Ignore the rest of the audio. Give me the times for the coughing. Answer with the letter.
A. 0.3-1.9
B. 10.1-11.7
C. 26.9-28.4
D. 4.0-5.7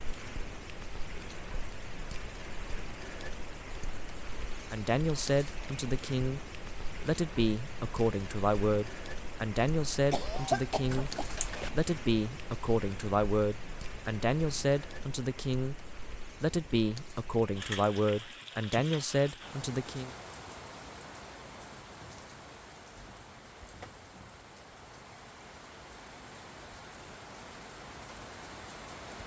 B.